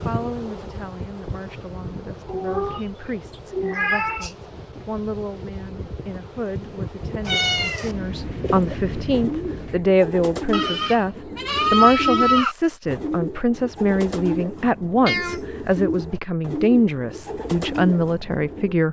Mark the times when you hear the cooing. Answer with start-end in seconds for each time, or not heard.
8.4-18.8.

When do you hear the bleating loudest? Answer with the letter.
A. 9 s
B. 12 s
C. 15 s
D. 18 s
B.